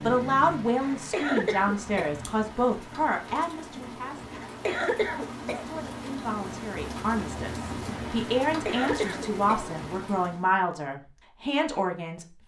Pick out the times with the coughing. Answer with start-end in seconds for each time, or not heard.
0.8-2.2, 4.3-5.7, 8.4-9.7.